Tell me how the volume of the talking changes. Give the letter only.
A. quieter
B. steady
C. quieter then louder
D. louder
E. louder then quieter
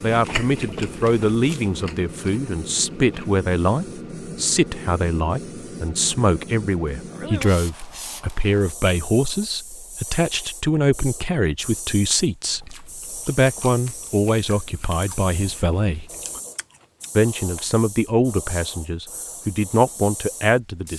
B.